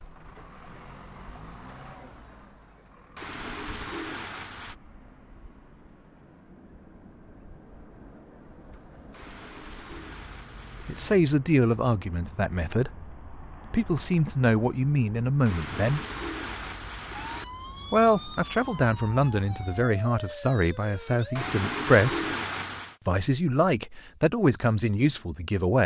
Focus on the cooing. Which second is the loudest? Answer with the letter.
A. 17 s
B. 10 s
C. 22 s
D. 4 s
C.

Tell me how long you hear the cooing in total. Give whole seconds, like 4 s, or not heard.
7 s.